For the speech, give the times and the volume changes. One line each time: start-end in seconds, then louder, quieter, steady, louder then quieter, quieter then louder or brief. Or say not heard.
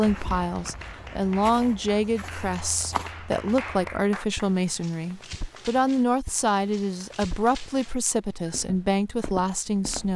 0.0-10.1 steady.